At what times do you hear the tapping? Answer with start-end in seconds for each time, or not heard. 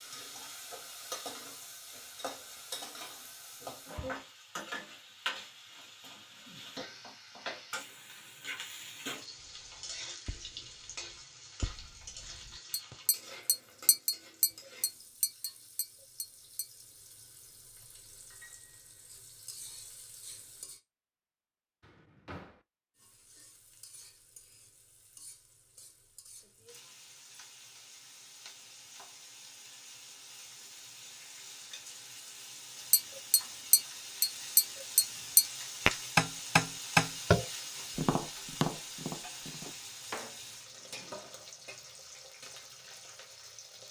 9.4-16.9, 32.9-39.8.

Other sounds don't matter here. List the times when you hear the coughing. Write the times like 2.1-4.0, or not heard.
not heard.